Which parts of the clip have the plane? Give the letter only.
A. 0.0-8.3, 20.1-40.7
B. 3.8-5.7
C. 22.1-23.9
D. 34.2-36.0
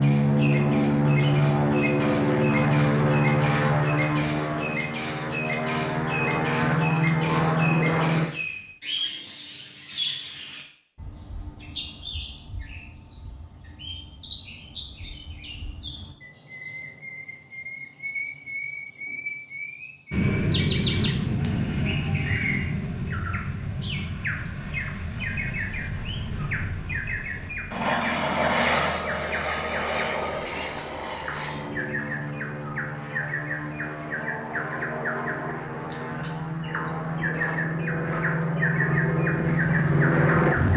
A.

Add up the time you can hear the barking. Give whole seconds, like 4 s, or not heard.
2 s.